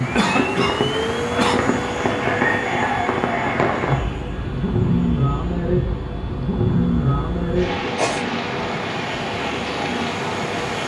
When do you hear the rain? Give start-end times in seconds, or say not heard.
0.0-10.8.